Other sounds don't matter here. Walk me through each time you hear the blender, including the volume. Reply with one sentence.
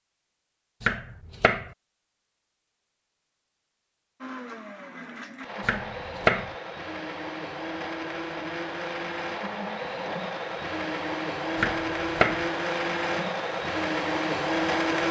The blender can be heard from 4.2 to 15.0 s, getting louder.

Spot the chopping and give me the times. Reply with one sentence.
You can hear the chopping from 0.8 to 1.7 s, from 5.6 to 6.5 s and from 11.6 to 12.4 s.